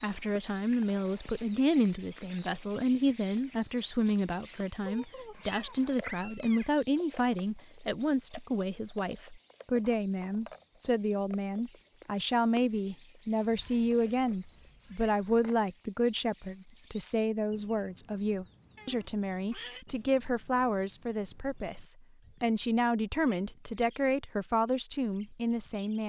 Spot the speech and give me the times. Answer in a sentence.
The speech can be heard from 0.0 to 26.0 s.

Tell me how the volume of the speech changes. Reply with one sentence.
The loudness of the speech stays about the same.